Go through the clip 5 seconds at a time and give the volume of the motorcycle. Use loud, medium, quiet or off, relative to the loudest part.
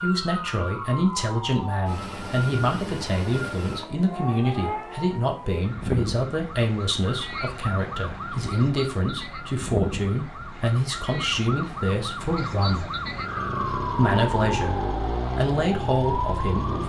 off, off, loud, loud.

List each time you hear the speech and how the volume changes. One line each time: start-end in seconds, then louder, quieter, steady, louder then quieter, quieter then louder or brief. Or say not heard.
0.0-12.9 steady
13.9-16.8 brief.